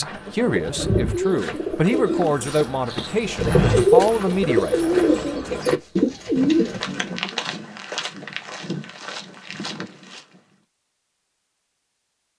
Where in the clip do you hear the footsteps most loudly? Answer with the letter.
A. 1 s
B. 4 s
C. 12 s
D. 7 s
B.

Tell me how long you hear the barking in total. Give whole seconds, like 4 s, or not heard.
not heard.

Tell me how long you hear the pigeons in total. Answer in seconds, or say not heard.
7 s.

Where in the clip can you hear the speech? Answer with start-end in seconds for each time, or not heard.
0.0-4.8.